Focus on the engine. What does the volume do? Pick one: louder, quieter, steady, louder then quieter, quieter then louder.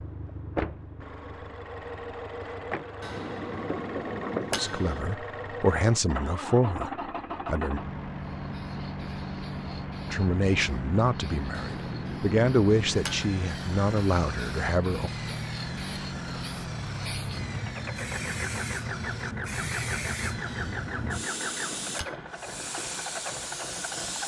steady.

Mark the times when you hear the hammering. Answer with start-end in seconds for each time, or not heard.
3.0-5.0, 11.5-13.3, 20.5-22.2.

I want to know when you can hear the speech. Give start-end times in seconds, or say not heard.
4.5-7.8, 10.1-15.1.